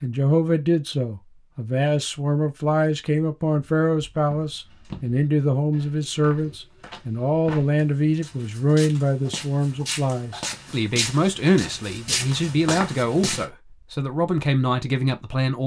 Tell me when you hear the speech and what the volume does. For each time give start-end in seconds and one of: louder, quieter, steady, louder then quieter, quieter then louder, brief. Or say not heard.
0.0-15.6 steady.